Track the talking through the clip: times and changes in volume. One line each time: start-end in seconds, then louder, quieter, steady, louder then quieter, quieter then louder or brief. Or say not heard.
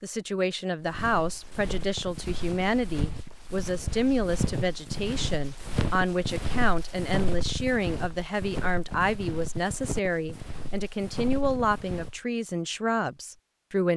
0.0-13.9 steady.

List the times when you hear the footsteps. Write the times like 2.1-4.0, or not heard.
0.8-12.2.